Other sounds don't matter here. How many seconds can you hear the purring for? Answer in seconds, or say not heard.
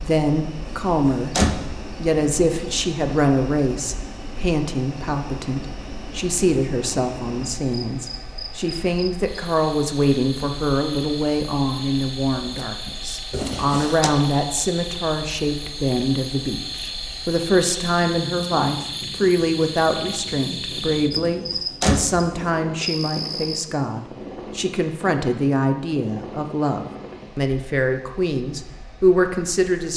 not heard.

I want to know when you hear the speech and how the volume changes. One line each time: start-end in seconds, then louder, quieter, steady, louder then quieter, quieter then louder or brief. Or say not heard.
0.0-29.9 steady.